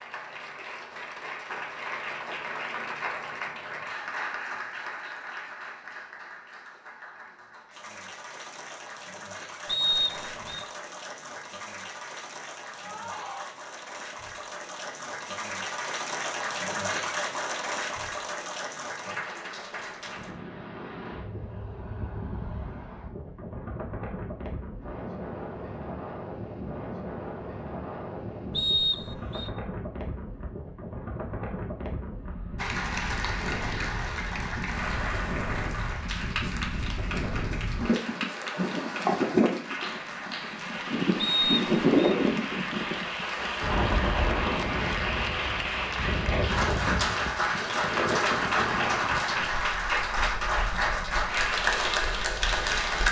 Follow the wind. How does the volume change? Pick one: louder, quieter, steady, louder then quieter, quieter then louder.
louder then quieter.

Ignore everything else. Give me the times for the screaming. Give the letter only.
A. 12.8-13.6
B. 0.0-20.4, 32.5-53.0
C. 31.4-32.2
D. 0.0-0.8
A.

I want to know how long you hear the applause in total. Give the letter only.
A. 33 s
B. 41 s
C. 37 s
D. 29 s
B.